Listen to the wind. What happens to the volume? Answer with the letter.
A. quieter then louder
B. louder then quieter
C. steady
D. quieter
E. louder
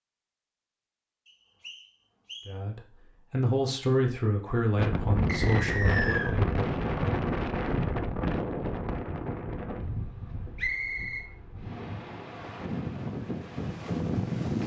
A.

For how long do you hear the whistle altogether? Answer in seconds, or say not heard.
3 s.